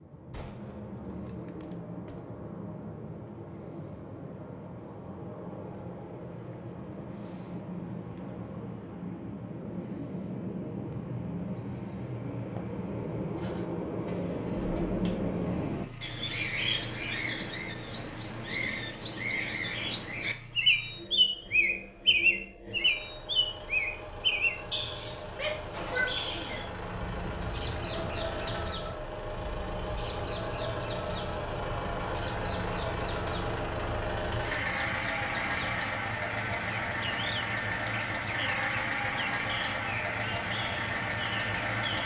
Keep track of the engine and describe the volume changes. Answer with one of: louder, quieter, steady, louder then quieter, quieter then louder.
louder.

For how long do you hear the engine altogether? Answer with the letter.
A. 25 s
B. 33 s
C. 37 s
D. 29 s
D.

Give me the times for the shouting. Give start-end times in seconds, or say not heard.
25.3-26.8.